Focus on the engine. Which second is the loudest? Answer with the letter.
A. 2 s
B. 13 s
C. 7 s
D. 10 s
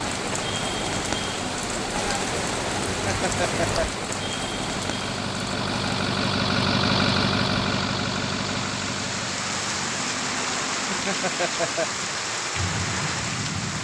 C.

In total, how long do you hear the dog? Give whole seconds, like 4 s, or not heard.
not heard.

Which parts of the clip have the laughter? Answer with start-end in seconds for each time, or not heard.
2.9-3.9, 10.8-12.1.